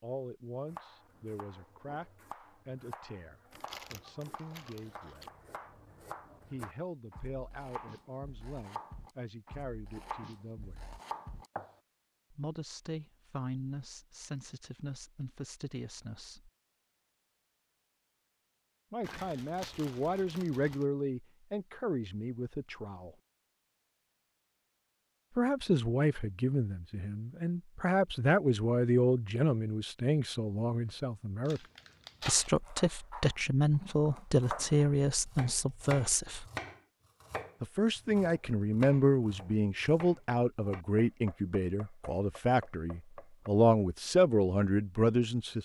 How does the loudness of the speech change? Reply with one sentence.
The loudness of the speech goes up.